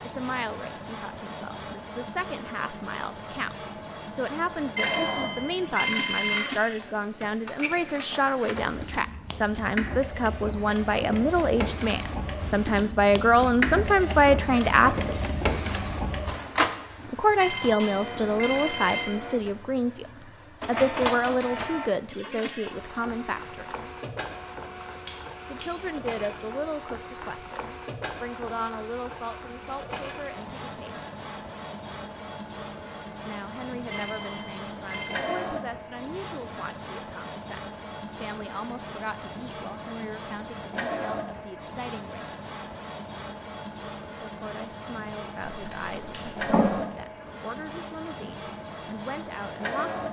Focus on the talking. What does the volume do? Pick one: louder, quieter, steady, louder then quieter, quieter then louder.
louder then quieter.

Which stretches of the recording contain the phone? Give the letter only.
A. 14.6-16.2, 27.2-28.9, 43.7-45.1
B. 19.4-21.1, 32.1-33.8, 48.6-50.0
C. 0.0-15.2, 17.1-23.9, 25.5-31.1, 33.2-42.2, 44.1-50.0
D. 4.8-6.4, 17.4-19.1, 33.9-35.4
D.